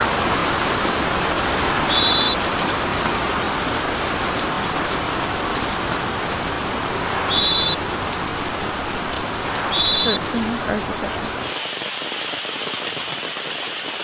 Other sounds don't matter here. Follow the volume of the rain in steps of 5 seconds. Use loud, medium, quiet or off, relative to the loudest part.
loud, loud, medium.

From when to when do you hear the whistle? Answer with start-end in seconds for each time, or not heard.
1.9-2.4, 7.0-7.8, 9.4-10.2.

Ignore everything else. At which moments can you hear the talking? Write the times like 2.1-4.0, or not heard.
9.9-11.3.